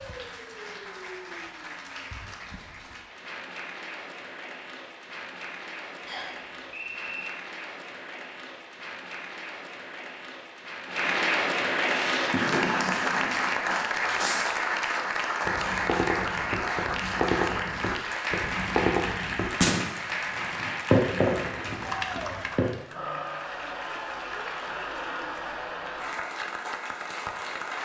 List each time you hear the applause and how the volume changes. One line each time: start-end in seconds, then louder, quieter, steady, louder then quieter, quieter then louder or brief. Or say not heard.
0.0-27.8 louder then quieter.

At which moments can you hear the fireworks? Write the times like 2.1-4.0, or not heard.
11.8-14.7, 15.4-22.7.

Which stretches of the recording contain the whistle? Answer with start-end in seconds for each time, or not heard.
6.0-7.3.